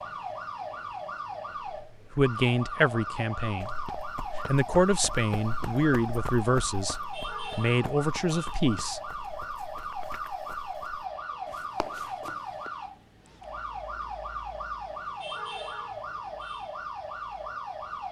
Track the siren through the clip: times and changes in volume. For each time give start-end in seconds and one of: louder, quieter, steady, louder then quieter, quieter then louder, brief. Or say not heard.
0.0-18.0 steady.